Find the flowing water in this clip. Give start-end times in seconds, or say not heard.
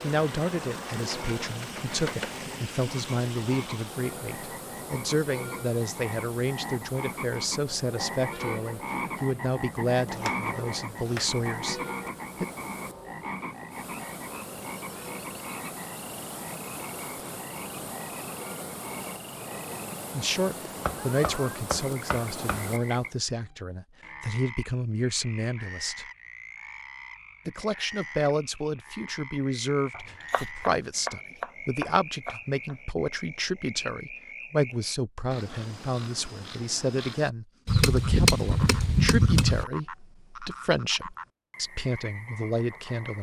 0.0-23.2.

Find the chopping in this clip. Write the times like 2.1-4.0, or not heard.
0.9-2.4, 10.1-11.4, 20.8-22.8, 29.9-32.8, 37.6-39.6.